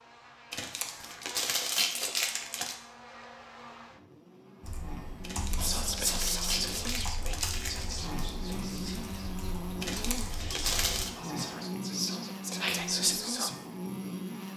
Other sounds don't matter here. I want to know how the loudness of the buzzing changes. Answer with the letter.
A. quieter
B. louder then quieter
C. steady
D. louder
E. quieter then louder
D.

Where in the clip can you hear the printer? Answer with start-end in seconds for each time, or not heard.
not heard.